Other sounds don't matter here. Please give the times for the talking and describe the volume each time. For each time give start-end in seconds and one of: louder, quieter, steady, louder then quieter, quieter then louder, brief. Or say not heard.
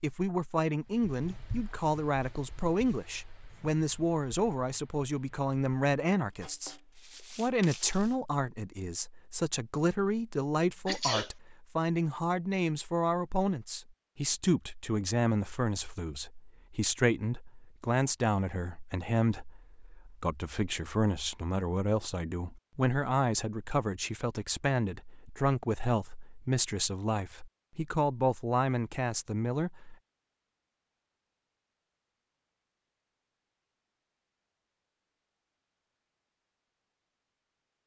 0.0-29.9 steady.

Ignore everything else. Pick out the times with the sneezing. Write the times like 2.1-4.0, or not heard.
10.8-11.3.